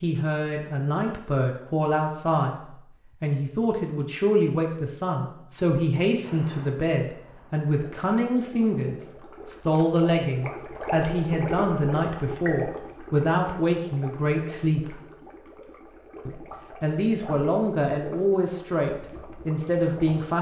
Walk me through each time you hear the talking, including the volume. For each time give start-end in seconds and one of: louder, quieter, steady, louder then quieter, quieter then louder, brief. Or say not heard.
0.0-15.0 steady
16.2-20.3 steady.